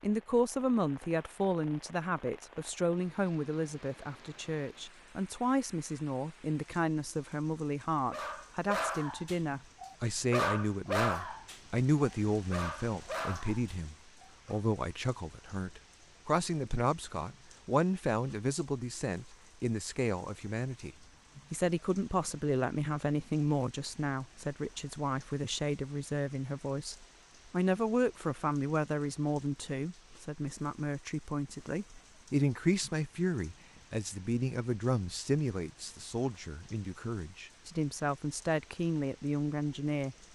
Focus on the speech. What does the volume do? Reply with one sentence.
The loudness of the speech stays about the same.